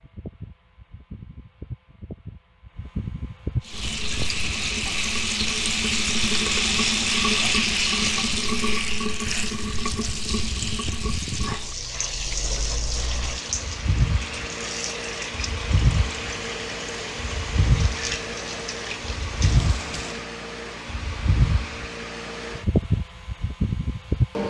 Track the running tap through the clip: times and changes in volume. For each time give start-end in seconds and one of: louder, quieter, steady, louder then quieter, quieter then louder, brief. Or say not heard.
3.6-20.2 quieter.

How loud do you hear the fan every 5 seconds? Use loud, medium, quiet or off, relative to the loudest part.
medium, quiet, medium, loud, loud.